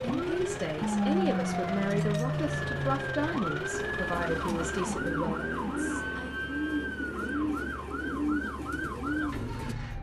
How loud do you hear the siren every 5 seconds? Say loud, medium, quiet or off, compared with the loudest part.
loud, medium.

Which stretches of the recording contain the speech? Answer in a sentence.
You can hear the speech from 0.0 to 6.3 s.